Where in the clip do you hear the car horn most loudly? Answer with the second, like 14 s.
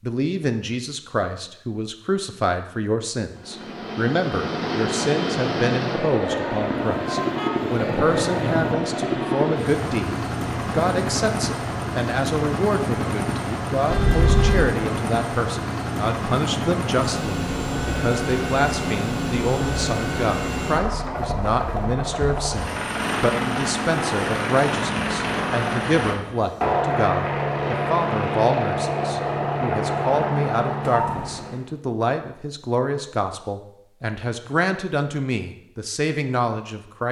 14 s.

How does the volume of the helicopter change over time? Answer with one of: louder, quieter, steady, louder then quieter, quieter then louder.
steady.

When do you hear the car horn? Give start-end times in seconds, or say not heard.
6.9-8.8, 13.9-14.7, 30.8-31.6.